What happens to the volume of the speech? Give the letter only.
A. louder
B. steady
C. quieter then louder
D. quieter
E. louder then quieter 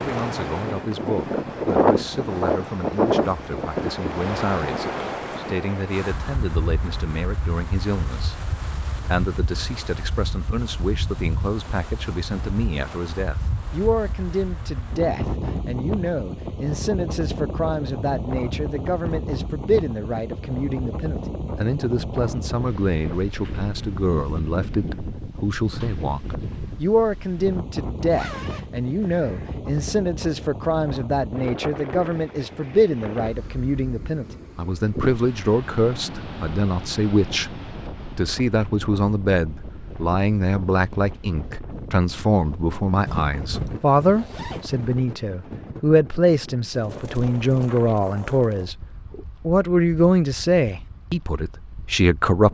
A.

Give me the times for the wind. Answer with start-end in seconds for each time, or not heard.
0.0-52.4.